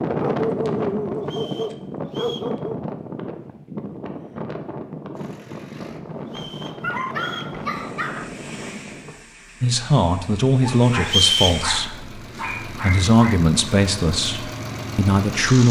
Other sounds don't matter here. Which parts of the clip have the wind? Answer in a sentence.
You can hear the wind from 0.0 to 9.2 s.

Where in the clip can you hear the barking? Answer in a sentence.
You can hear the barking from 0.1 to 2.8 s, from 6.8 to 8.3 s and from 10.6 to 13.3 s.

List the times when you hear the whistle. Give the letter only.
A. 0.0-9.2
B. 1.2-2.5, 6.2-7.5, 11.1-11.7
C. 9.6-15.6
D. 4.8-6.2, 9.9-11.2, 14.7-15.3
B.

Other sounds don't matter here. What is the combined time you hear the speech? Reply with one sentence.
The speech can be heard for 6 seconds in total.